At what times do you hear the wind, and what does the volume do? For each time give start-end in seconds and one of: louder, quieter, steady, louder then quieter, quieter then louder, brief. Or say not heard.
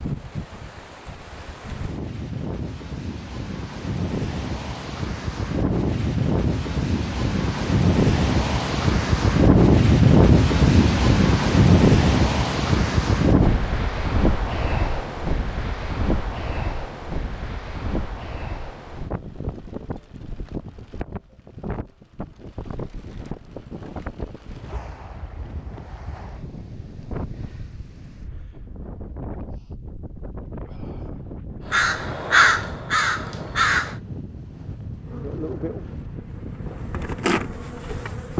0.0-38.3 louder then quieter.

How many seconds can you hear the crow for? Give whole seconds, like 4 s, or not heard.
2 s.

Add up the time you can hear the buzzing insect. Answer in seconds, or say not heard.
3 s.